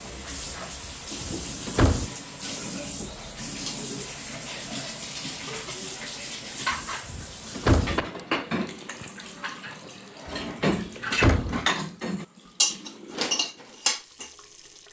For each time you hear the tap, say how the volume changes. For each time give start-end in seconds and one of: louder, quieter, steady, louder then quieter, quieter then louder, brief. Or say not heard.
0.0-14.8 quieter.